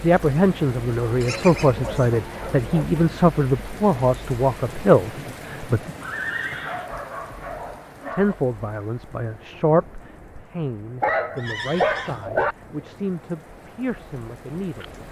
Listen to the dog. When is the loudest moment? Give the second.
12 s.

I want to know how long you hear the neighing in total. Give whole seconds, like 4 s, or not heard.
3 s.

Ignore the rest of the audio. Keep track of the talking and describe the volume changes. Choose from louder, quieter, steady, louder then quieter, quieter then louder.
quieter.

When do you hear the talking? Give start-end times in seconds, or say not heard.
0.0-5.9, 8.1-14.8.